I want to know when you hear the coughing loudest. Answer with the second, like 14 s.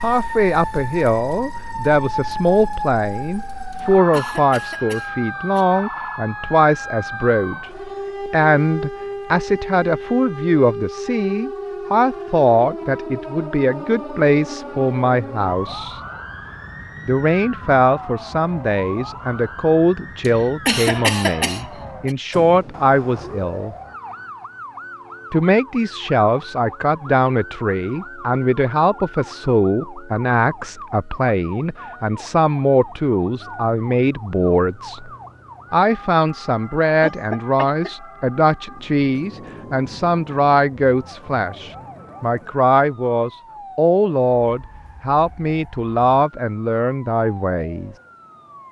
21 s.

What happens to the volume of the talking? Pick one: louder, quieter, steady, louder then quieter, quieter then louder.
steady.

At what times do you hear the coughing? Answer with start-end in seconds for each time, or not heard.
3.7-5.7, 20.2-22.1, 37.0-37.9.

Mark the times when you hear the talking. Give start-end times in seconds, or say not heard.
0.0-16.0, 17.1-23.8, 25.3-35.1, 35.7-48.0.